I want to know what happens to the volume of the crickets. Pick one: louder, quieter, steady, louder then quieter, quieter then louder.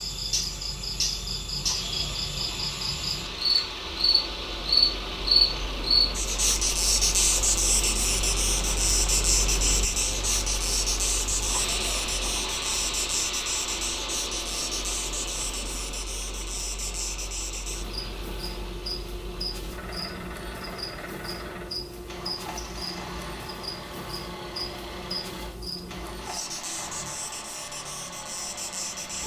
quieter.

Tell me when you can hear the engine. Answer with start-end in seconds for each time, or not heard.
0.0-29.2.